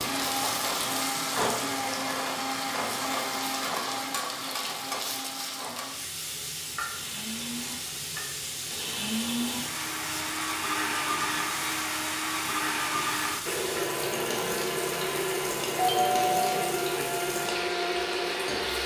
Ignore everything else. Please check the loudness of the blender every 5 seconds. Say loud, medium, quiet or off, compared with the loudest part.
loud, medium, loud, loud.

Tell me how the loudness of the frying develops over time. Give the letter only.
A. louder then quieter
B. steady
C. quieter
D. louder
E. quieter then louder
B.